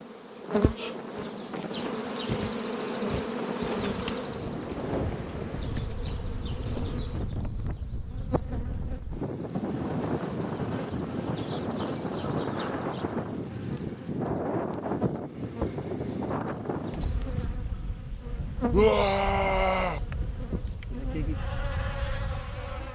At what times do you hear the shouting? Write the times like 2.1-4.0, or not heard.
18.7-20.0.